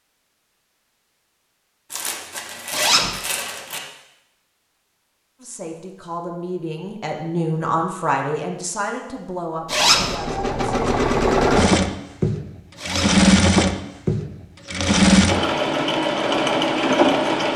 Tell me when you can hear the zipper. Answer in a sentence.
You can hear the zipper from 2.7 to 3.2 s, from 9.7 to 10.2 s and from 12.8 to 13.2 s.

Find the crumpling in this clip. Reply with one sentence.
You can hear the crumpling from 1.9 to 3.8 s.